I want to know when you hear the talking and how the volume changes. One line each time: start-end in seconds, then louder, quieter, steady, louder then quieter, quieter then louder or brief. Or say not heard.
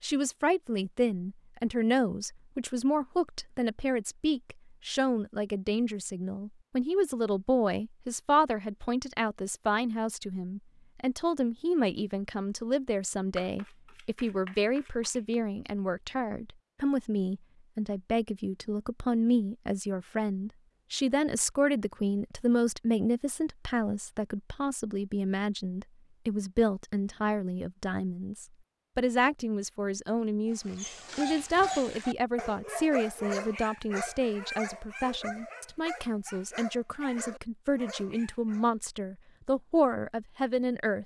0.0-41.0 steady.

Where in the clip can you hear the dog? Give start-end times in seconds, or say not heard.
30.4-38.6.